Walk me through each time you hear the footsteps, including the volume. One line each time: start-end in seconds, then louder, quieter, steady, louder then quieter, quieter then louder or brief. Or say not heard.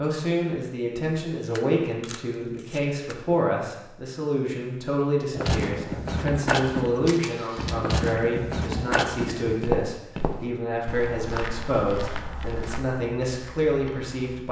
5.3-14.4 quieter.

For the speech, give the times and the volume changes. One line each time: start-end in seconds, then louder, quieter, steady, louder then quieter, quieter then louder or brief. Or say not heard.
0.0-14.4 steady.